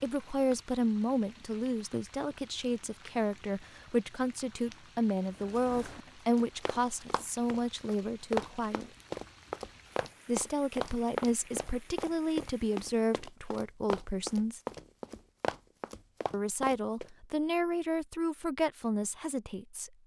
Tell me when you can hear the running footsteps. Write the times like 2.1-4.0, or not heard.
5.3-17.1.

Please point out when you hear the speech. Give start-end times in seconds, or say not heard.
0.0-8.9, 10.2-14.6, 16.3-19.9.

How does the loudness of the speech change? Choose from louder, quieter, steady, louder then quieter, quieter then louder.
steady.